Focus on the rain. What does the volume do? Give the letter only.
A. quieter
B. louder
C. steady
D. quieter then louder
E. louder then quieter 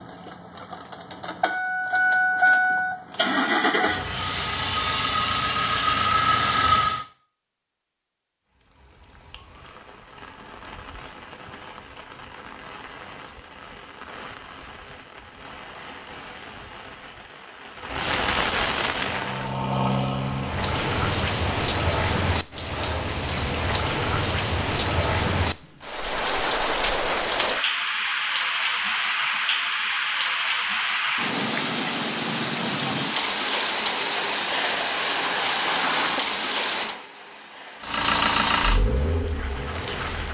B.